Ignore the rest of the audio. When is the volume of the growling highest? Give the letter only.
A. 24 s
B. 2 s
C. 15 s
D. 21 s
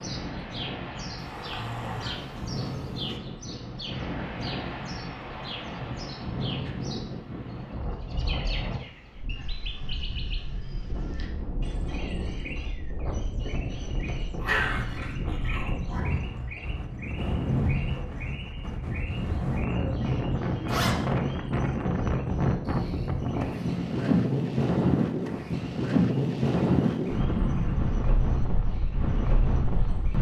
C.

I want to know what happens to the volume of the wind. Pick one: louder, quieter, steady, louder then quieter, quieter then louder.
louder.